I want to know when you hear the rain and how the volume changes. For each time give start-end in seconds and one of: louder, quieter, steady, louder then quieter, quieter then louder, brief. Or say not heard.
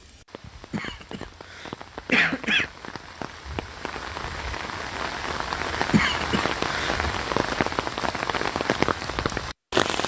0.0-10.0 louder.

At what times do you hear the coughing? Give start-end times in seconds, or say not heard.
0.7-2.7, 5.9-7.0.